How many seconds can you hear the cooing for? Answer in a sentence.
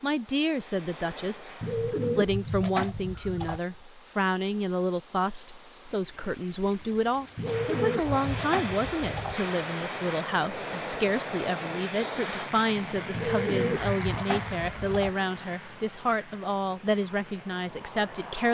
You can hear the cooing for 6 seconds altogether.